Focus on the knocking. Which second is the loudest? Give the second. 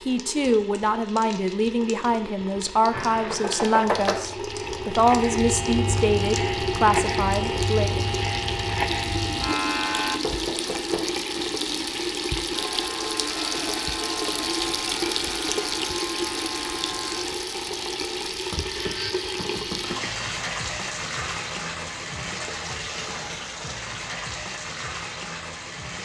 4 s.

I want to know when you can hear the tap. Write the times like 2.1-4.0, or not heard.
0.0-26.0.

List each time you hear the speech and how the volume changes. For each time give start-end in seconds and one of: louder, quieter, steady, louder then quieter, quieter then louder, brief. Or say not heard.
0.1-8.1 steady.